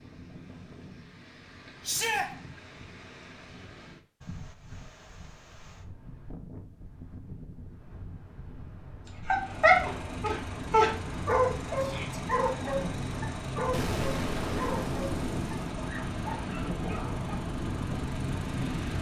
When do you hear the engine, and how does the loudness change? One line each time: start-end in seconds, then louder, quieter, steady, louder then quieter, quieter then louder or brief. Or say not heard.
9.3-18.9 steady.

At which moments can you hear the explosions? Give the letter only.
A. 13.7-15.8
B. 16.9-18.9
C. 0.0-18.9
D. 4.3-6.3
A.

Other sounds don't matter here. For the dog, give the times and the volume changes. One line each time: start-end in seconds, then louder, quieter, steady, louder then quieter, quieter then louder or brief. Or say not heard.
9.2-17.3 quieter.